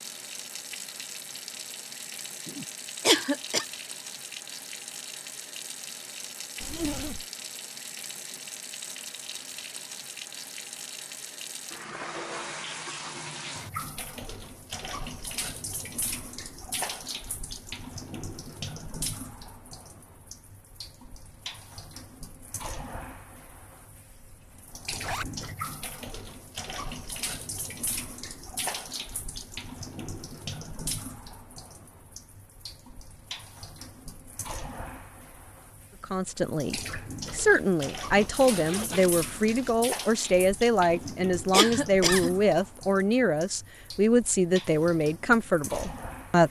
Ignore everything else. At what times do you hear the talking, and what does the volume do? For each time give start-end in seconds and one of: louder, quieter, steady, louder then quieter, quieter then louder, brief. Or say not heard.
36.0-46.4 steady.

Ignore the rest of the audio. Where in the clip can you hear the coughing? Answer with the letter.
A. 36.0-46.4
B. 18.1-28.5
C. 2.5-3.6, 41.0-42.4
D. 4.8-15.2
C.